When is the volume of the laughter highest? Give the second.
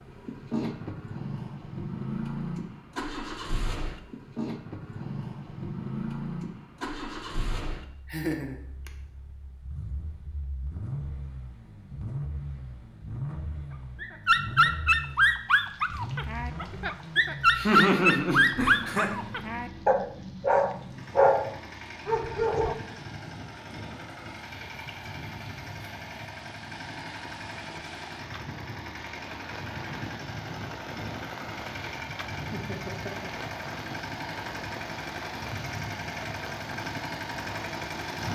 18 s.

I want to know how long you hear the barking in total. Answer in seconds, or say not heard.
9 s.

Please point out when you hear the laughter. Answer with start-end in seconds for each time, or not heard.
8.1-8.9, 17.6-19.1, 32.5-33.3.